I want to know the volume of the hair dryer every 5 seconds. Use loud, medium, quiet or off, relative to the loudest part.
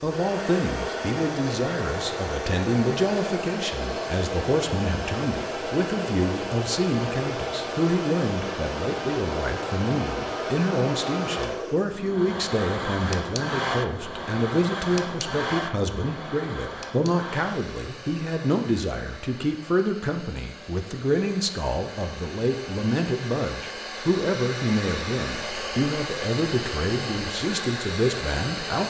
loud, loud, loud, medium, medium, loud.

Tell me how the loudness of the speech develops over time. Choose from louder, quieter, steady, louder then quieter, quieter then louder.
steady.